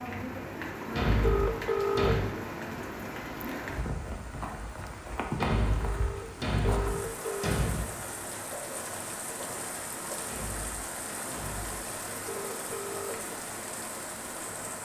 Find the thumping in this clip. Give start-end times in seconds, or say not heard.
0.9-2.2, 5.4-7.9, 10.2-11.8.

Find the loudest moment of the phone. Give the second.
2 s.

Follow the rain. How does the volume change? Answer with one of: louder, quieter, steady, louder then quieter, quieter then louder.
steady.